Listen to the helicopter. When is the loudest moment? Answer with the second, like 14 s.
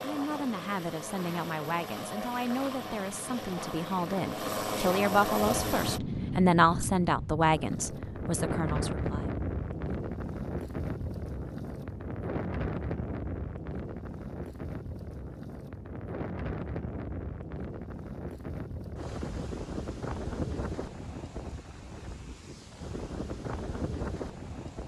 5 s.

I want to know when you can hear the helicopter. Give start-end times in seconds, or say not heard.
0.0-6.0.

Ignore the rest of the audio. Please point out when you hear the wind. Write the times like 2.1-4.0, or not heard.
5.3-24.8.